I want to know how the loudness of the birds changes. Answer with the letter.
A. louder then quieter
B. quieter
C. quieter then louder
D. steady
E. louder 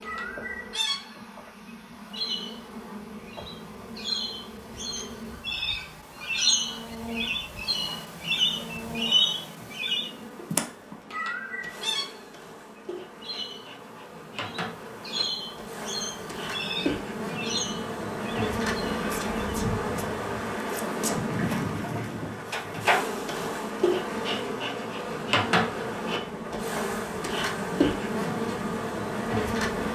A.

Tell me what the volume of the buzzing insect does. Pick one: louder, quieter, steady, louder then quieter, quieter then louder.
louder.